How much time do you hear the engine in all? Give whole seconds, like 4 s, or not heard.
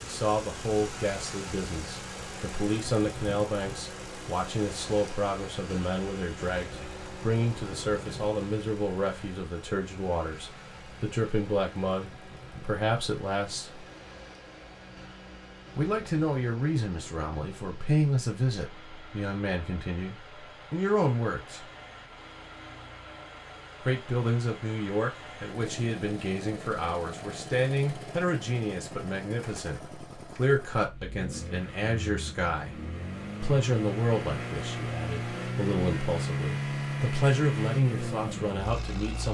39 s.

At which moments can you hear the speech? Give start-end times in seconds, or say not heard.
0.0-13.8, 15.8-21.6, 23.8-32.8, 33.4-39.2.